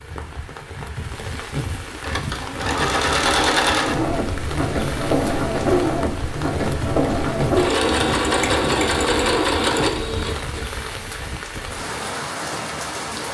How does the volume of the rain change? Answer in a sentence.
The loudness of the rain stays about the same.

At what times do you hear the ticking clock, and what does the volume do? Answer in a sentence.
The ticking clock can't be heard in this clip.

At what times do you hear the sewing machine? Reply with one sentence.
The sewing machine can be heard from 2.0 to 10.8 s.